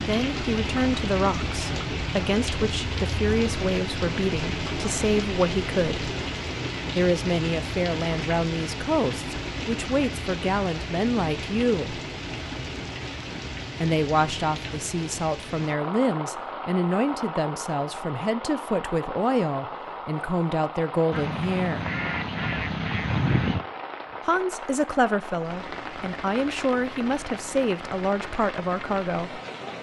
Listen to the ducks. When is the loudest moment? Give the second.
23 s.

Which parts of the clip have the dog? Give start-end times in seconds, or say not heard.
not heard.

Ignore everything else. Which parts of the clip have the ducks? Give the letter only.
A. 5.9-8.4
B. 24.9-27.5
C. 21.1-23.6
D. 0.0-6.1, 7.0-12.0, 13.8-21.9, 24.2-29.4
C.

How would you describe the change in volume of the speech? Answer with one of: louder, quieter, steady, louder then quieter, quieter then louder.
steady.